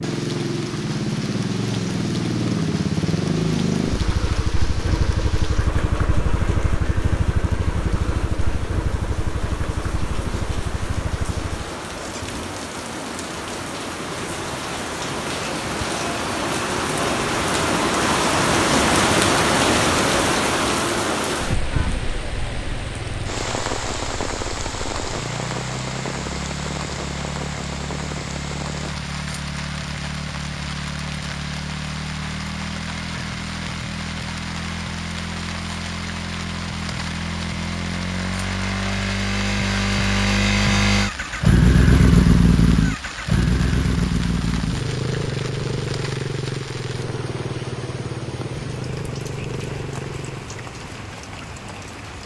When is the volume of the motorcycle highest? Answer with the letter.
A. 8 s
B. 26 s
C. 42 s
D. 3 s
C.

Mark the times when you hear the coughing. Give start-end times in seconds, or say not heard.
not heard.